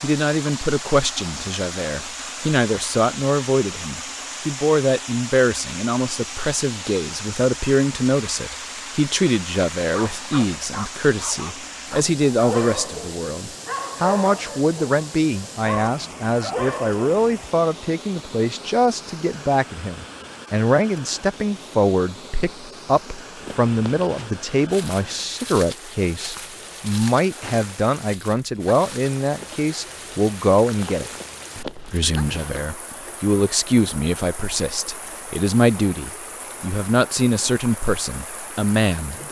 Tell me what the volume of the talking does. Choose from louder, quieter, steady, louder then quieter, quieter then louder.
steady.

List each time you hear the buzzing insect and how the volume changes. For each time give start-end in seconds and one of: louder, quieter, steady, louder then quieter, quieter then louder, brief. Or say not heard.
not heard.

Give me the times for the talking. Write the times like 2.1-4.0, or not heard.
0.0-39.2.